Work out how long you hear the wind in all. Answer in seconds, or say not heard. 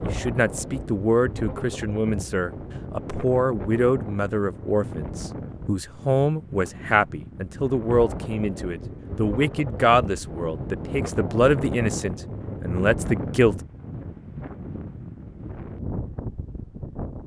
17 s.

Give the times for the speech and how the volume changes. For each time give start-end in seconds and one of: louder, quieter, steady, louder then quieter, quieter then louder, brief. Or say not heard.
0.0-13.6 steady.